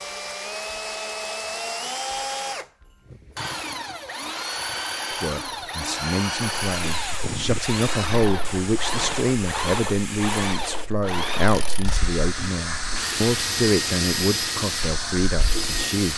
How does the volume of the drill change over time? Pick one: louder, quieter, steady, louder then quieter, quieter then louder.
steady.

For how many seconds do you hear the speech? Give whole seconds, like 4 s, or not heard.
11 s.